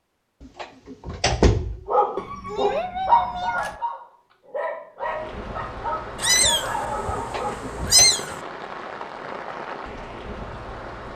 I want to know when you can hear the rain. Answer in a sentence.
You can hear the rain from 5.0 to 11.1 s.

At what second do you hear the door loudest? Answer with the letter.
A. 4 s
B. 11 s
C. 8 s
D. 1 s
D.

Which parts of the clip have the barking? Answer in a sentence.
The barking can be heard from 1.9 to 8.2 s.